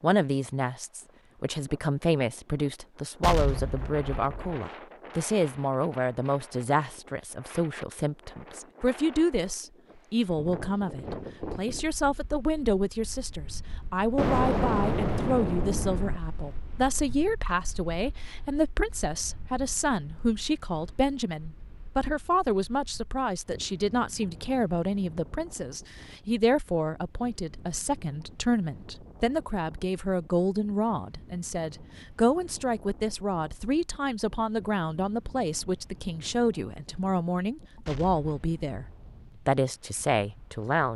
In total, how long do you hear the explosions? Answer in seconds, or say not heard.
5 s.